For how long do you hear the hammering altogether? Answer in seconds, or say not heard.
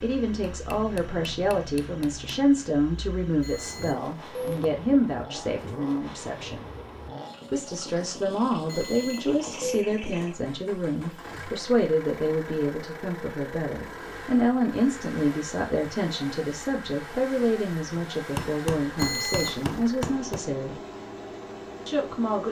4 s.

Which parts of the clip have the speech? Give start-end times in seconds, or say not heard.
0.0-6.7, 7.5-20.8, 21.9-22.4.